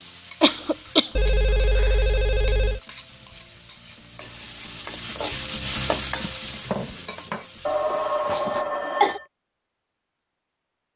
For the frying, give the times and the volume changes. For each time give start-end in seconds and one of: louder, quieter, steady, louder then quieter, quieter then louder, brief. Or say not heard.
0.0-8.4 louder then quieter.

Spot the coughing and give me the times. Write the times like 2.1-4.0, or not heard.
0.4-1.2, 8.2-9.2.